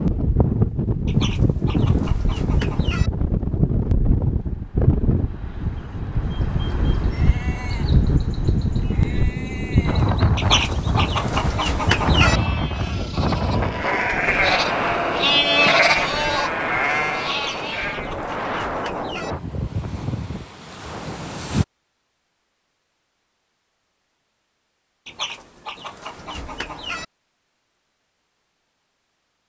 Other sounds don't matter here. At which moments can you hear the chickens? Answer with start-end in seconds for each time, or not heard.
1.1-3.1, 10.3-12.4, 17.3-19.4, 25.1-27.1.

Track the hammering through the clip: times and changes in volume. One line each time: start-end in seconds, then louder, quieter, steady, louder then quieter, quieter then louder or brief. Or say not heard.
not heard.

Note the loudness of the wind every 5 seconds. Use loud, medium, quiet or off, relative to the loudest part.
loud, loud, loud, medium, medium, off.